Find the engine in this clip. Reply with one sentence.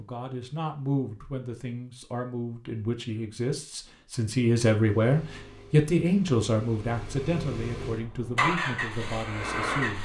The engine can be heard from 4.7 to 10.0 s.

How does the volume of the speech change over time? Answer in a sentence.
The volume of the speech goes up, then down.